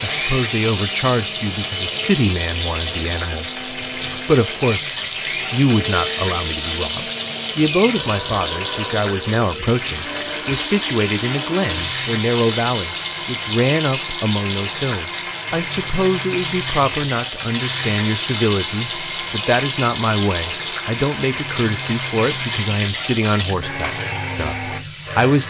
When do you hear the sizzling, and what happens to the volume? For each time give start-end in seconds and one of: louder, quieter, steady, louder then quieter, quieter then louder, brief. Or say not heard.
0.0-25.4 steady.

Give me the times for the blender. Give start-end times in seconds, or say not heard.
0.0-25.4.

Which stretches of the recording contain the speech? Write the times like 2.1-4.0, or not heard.
0.0-25.4.